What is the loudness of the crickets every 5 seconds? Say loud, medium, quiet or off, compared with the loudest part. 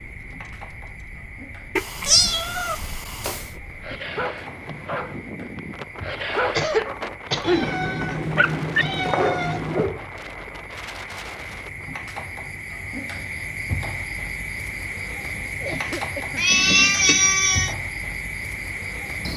medium, medium, loud, loud.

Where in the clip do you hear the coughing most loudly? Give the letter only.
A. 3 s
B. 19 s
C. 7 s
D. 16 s
C.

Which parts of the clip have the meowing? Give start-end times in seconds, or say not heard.
1.8-3.5, 7.4-9.9, 16.4-17.8.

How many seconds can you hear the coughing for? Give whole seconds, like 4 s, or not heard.
2 s.